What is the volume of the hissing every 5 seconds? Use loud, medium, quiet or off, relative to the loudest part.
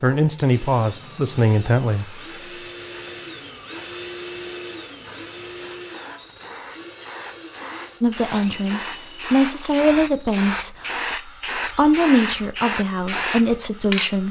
quiet, medium, loud.